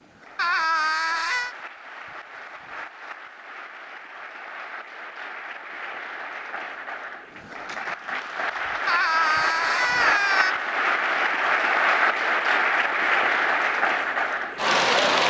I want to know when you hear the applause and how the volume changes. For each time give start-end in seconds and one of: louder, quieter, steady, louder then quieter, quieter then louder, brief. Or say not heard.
0.0-15.2 louder.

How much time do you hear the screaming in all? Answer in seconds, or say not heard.
3 s.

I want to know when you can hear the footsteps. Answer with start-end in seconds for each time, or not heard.
not heard.